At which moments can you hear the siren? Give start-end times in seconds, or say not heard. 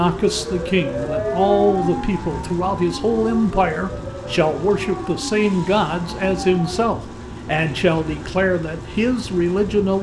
0.0-6.8.